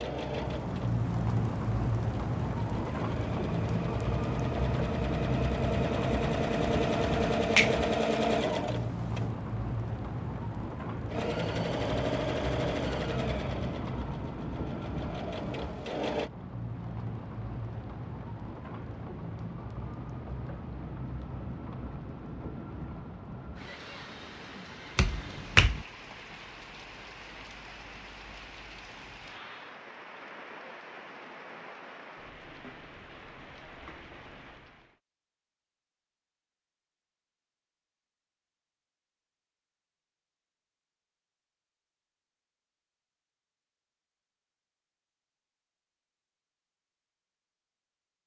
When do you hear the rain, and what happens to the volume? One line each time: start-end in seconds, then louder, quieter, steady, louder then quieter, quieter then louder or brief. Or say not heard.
0.0-35.0 quieter.